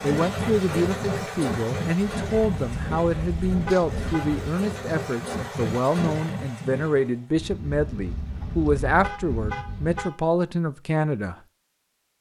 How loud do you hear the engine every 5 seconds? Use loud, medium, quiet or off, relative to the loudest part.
loud, loud, off.